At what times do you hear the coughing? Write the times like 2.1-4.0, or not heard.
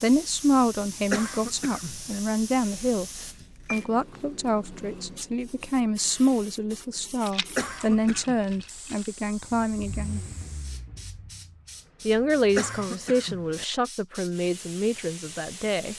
1.1-2.2, 7.5-8.3, 12.6-13.7.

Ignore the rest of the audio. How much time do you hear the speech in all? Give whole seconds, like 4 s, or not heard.
14 s.